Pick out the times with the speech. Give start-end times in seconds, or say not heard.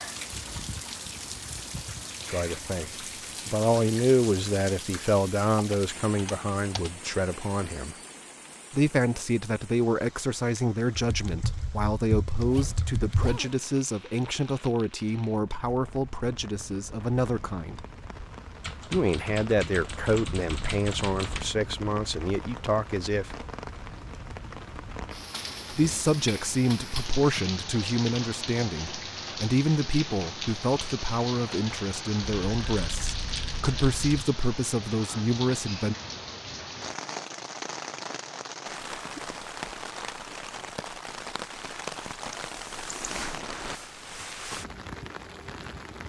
2.2-8.0, 8.7-17.9, 18.9-23.4, 25.7-36.0.